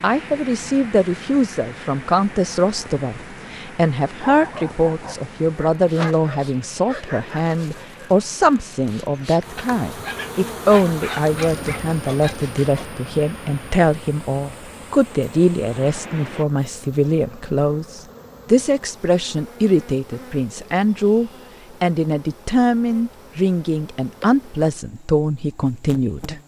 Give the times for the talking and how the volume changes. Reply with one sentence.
The talking can be heard from 0.0 to 26.4 s, at a steady volume.